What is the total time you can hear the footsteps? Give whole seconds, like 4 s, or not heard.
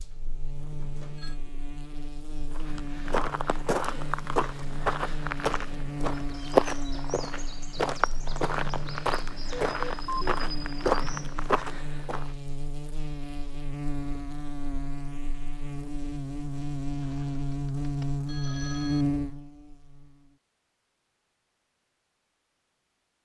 10 s.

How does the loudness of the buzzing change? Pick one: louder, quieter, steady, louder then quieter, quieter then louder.
louder.